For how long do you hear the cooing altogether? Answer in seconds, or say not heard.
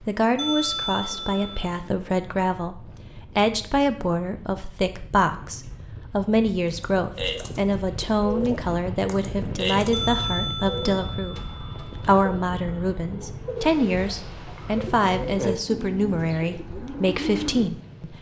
11 s.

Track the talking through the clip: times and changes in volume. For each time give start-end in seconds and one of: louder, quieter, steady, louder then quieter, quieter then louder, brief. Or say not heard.
0.0-18.1 steady.